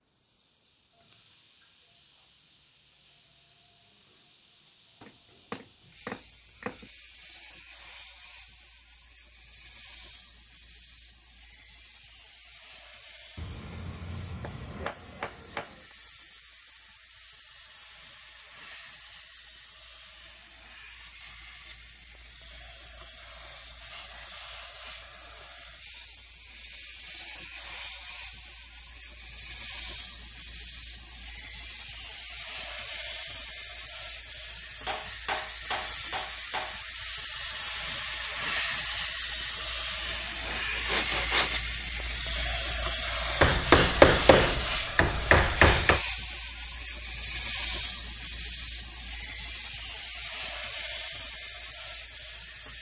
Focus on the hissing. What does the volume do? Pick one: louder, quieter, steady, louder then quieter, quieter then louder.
louder.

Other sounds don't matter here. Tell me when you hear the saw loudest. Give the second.
41 s.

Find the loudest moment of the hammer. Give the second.
44 s.